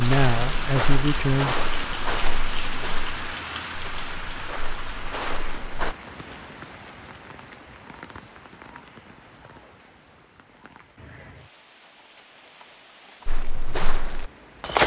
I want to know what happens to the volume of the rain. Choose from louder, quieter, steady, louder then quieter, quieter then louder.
quieter.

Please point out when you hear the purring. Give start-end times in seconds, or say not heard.
not heard.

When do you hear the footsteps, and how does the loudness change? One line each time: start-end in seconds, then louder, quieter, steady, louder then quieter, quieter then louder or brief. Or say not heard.
0.0-6.0 quieter then louder
13.2-14.8 brief.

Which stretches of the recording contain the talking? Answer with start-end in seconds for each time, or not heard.
0.0-1.6.